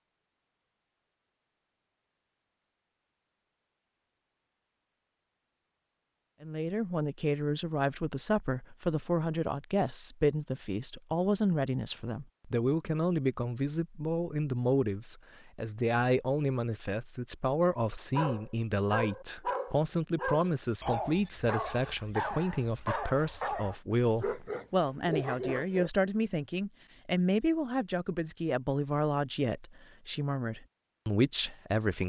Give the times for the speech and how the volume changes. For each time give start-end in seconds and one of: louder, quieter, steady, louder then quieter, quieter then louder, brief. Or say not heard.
6.4-32.0 steady.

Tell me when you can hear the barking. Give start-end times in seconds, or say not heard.
18.1-25.9.